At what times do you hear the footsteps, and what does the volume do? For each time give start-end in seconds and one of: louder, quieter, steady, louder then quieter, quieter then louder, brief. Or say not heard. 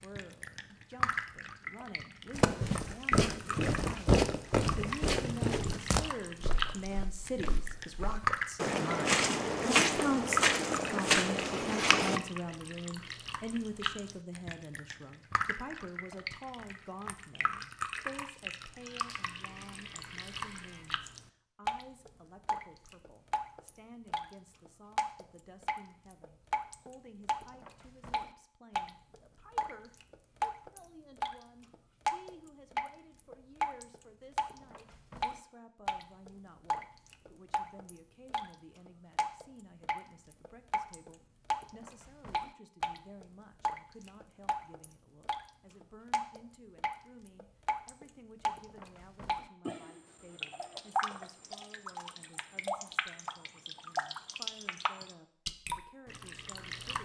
2.3-12.2 quieter then louder.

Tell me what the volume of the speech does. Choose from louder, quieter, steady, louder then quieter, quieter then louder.
quieter.